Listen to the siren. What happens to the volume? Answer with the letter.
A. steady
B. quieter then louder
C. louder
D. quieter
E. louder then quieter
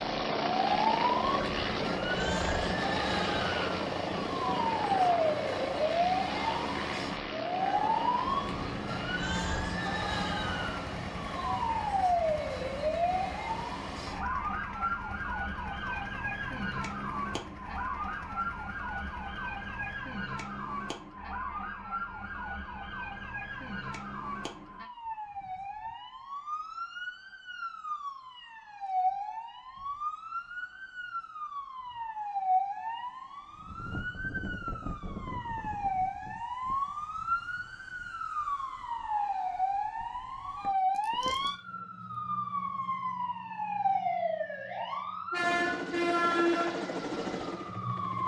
B.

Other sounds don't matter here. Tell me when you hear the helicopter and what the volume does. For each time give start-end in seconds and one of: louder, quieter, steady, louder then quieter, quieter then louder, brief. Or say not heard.
0.0-20.0 quieter
45.4-48.2 brief.